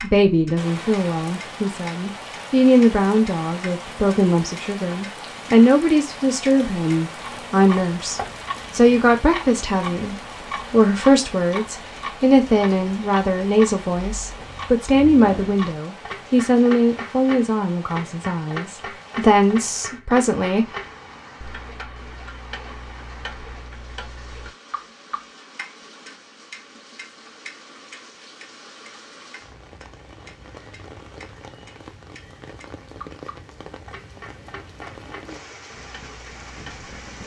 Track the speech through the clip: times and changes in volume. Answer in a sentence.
You can hear the speech from 0.0 to 20.7 s, at a steady volume.